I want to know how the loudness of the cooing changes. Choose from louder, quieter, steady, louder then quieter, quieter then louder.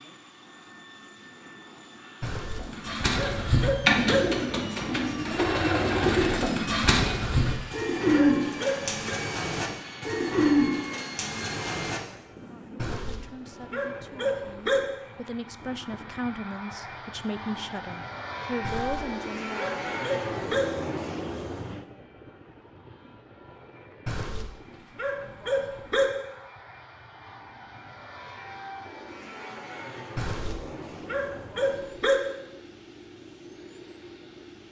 quieter.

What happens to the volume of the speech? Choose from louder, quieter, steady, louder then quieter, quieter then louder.
louder.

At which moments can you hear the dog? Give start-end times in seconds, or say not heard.
2.2-4.2, 7.2-9.2, 12.8-14.8, 18.6-20.6, 24.1-26.1, 30.1-32.2.